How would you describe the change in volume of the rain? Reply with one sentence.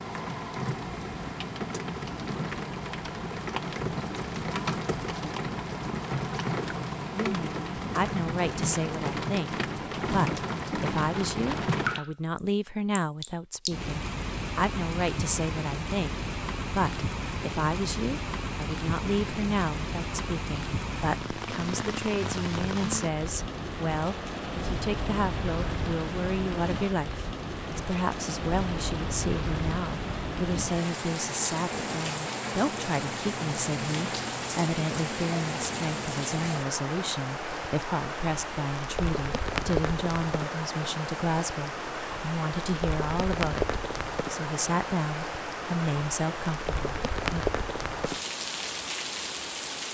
The loudness of the rain stays about the same.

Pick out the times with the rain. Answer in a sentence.
You can hear the rain from 0.0 to 49.8 s.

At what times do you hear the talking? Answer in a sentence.
You can hear the talking from 7.1 to 47.5 s.